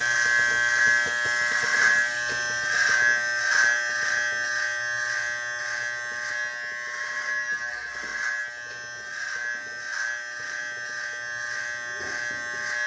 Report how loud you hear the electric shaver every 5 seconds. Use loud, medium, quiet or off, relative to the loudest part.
loud, medium, medium.